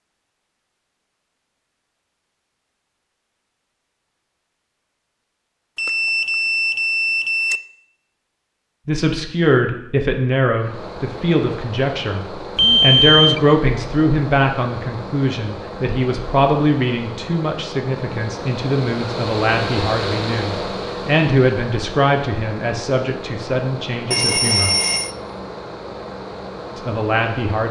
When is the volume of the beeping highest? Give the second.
13 s.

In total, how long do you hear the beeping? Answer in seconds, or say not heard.
4 s.